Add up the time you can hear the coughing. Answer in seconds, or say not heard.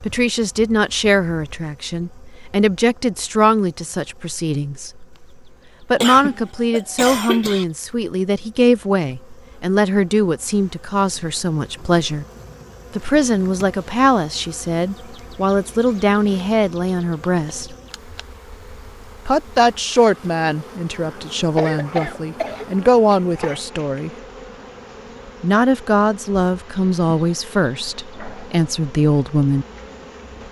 4 s.